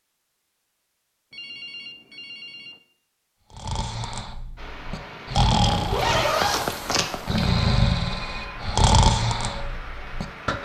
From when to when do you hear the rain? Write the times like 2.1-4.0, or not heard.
4.5-10.5.